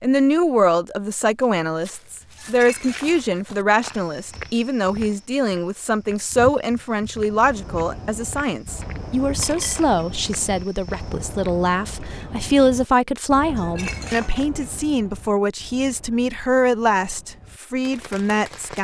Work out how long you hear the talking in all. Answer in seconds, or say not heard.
19 s.